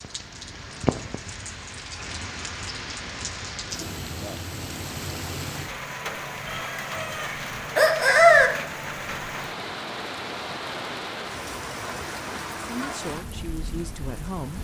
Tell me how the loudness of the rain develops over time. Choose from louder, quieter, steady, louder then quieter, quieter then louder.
steady.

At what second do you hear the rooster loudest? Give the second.
8 s.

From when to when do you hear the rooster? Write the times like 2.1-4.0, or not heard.
6.5-8.5.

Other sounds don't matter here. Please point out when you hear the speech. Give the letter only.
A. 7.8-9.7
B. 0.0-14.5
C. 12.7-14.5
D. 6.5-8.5
C.